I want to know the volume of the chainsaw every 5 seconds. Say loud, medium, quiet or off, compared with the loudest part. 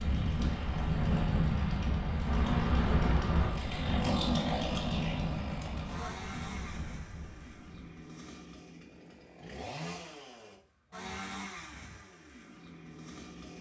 loud, medium, medium.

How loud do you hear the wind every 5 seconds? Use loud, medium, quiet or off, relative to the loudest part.
loud, medium, off.